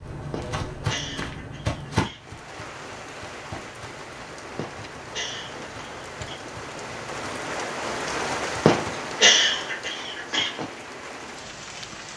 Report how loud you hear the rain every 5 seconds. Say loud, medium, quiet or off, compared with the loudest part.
medium, loud, medium.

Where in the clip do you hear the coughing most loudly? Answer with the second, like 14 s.
9 s.